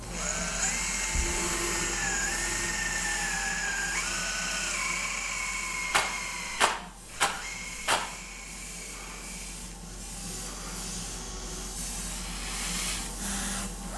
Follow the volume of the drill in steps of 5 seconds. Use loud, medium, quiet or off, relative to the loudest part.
loud, medium, medium.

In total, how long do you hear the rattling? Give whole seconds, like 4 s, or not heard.
2 s.